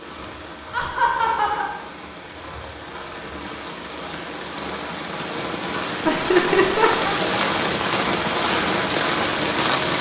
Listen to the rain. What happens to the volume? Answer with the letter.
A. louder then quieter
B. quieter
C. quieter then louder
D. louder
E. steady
D.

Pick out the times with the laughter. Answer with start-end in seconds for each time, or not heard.
0.7-1.7, 6.0-7.2.